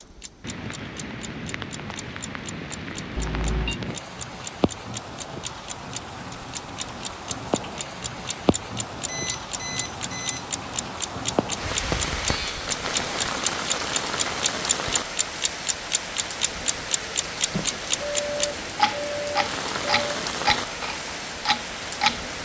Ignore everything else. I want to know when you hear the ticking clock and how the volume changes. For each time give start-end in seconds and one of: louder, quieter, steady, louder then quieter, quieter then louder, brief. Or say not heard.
0.0-22.2 louder.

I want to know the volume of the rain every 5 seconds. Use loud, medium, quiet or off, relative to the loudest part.
medium, medium, loud, loud, loud.